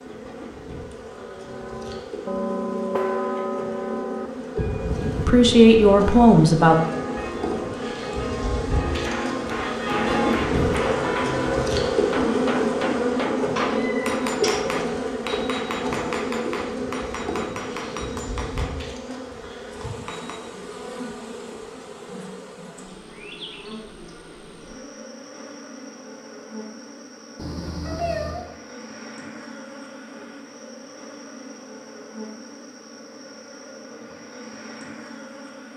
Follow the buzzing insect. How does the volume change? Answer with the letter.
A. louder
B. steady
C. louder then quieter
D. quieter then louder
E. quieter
C.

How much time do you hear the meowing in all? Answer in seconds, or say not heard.
2 s.